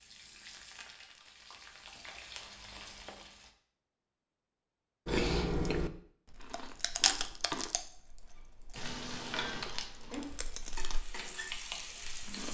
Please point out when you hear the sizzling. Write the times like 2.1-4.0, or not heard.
0.0-3.5, 8.8-12.4.